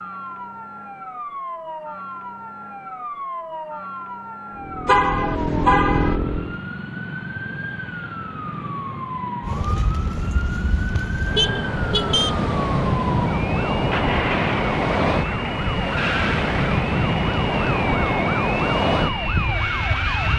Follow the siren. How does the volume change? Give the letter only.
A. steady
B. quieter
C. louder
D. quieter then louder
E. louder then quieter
C.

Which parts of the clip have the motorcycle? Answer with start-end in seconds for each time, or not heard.
4.5-6.6.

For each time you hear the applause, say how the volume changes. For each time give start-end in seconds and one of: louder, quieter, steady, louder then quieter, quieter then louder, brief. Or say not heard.
not heard.